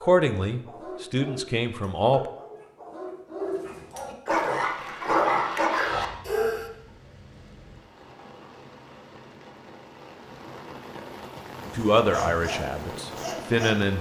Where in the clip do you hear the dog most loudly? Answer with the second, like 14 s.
5 s.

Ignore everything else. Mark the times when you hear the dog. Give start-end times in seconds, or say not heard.
0.0-6.7, 11.6-13.8.